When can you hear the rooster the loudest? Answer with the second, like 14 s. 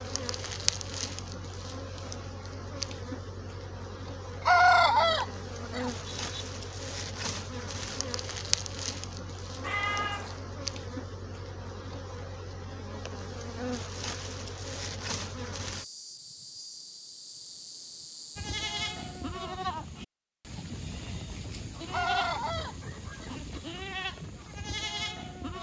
5 s.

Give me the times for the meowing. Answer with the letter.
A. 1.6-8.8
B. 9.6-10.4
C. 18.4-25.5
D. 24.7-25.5
B.